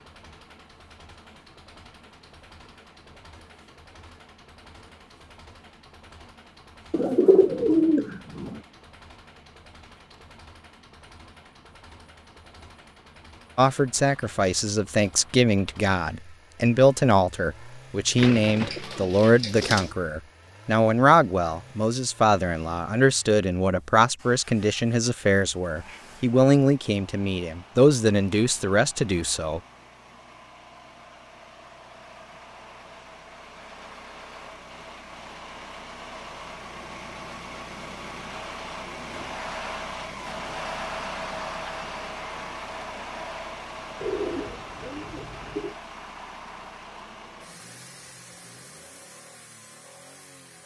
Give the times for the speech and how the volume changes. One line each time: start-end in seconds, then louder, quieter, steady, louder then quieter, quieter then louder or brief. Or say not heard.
13.6-29.6 steady.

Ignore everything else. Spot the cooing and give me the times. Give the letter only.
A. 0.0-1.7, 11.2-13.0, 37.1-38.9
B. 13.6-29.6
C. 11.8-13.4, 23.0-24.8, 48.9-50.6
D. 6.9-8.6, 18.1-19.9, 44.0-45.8
D.